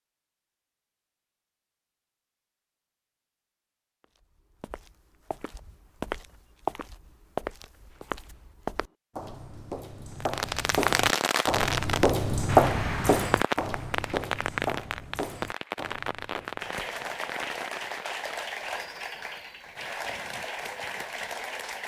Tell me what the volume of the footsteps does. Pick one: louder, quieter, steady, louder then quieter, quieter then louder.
louder then quieter.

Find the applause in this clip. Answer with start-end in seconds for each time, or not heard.
16.6-21.8.